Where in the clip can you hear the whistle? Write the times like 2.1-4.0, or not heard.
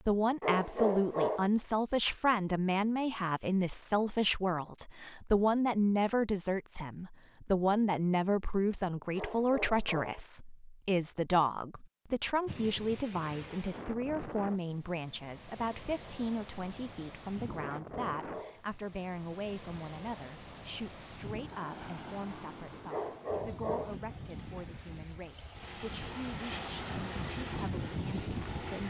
not heard.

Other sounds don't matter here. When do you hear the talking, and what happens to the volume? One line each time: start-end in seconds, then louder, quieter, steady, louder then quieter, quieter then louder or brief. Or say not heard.
0.1-28.8 quieter.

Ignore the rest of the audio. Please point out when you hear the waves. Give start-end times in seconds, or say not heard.
12.4-28.8.